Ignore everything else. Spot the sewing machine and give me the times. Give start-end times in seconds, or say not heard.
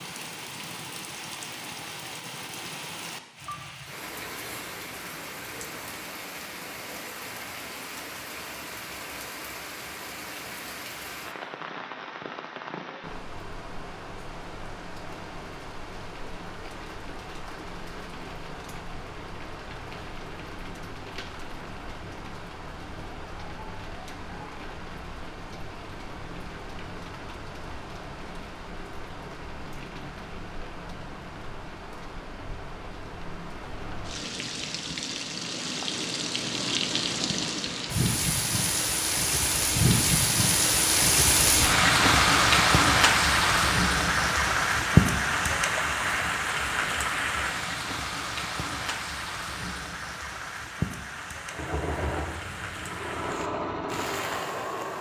51.5-54.9.